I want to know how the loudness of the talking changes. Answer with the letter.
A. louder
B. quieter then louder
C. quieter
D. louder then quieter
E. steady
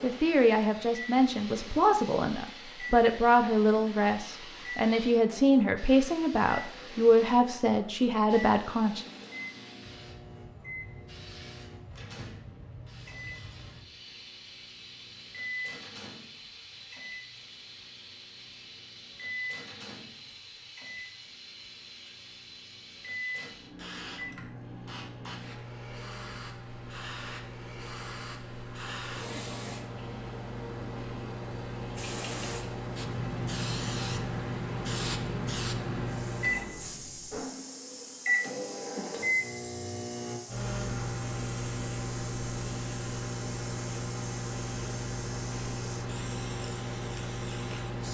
E.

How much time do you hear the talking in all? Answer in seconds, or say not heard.
9 s.